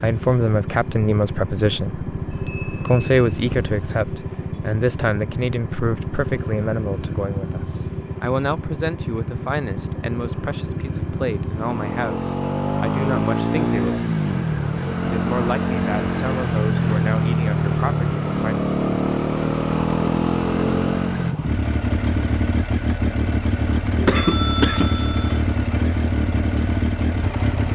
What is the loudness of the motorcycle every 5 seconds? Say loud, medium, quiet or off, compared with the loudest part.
medium, medium, loud, loud, loud, loud.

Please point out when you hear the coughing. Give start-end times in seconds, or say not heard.
24.0-25.1.